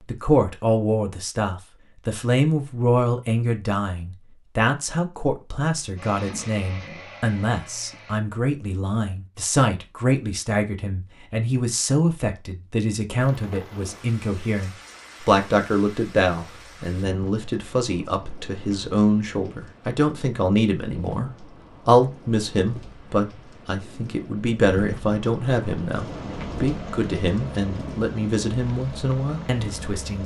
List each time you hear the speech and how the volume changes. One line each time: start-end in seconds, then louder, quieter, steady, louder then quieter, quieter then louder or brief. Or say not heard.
0.1-30.2 steady.